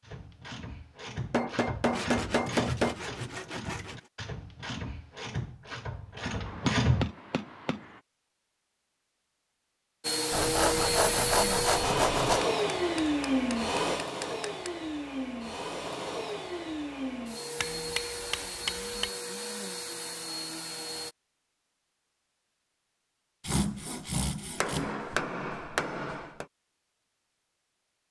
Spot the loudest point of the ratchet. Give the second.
7 s.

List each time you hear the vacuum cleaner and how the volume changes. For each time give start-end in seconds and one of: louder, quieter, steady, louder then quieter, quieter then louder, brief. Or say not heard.
10.0-21.1 quieter.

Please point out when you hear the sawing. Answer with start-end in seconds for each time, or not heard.
1.9-4.1, 10.3-12.4, 23.4-24.9.